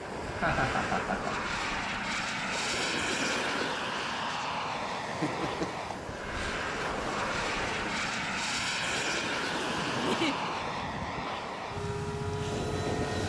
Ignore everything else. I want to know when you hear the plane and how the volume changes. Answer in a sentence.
The plane can be heard from 0.0 to 13.2 s, at a steady volume.